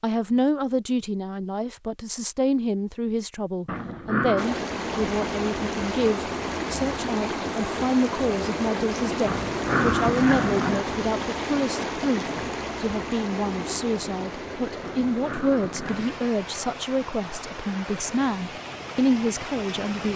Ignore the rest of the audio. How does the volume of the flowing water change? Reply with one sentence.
The loudness of the flowing water goes down.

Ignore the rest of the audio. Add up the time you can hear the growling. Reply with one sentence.
You can hear the growling for 4 seconds altogether.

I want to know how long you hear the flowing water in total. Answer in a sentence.
You can hear the flowing water for 16 seconds altogether.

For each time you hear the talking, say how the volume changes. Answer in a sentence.
You can hear the talking from 0.0 to 20.1 s, at a steady volume.